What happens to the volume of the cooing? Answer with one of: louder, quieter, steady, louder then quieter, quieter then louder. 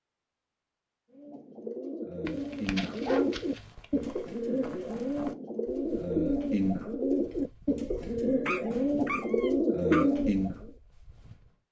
louder.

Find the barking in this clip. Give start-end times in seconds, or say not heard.
2.2-3.9, 8.4-10.1.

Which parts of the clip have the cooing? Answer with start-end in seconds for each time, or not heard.
1.1-10.7.